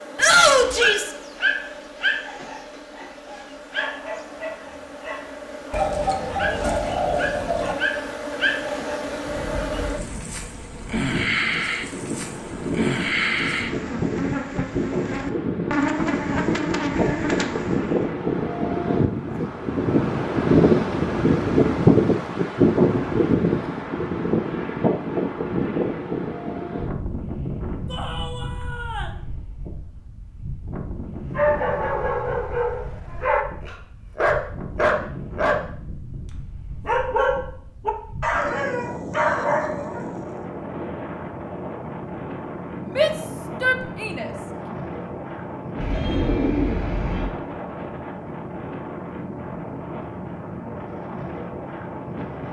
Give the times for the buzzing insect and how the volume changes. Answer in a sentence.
You can hear the buzzing insect from 0.0 to 18.1 s, getting louder.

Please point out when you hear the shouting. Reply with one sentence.
You can hear the shouting from 0.1 to 1.1 s, from 27.9 to 29.2 s and from 43.0 to 44.3 s.